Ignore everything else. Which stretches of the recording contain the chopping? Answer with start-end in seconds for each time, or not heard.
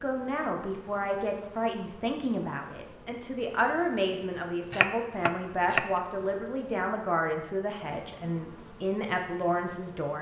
4.7-6.0.